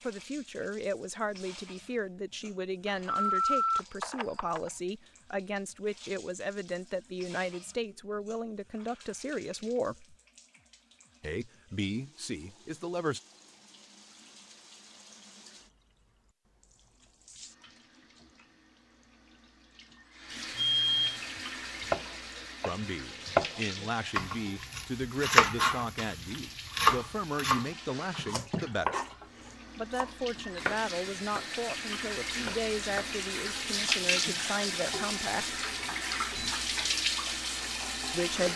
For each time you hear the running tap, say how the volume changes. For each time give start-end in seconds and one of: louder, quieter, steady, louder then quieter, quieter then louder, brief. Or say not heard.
0.0-38.5 louder.